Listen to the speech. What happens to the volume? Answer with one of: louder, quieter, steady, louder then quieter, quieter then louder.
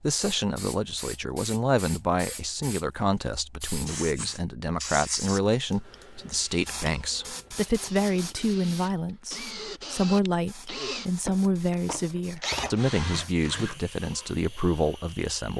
steady.